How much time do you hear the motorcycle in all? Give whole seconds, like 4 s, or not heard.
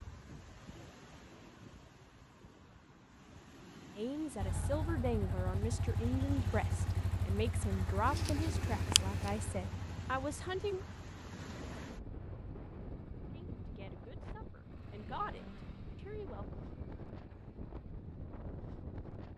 15 s.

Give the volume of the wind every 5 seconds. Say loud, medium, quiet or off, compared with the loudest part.
medium, loud, loud, loud.